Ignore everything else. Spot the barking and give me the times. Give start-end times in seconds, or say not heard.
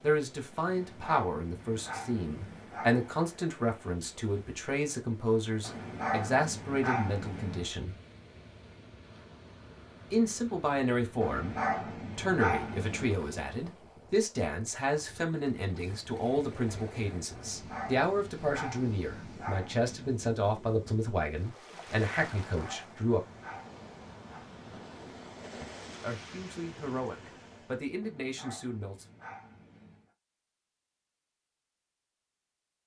0.7-3.2, 5.6-7.7, 11.2-13.1, 17.3-20.2, 22.4-24.4, 28.0-30.1.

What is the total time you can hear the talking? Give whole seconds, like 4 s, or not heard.
24 s.